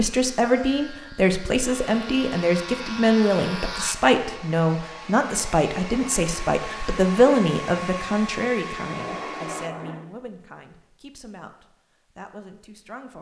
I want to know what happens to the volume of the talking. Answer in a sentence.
The volume of the talking goes down.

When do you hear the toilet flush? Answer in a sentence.
The toilet flush can be heard from 8.8 to 10.1 s.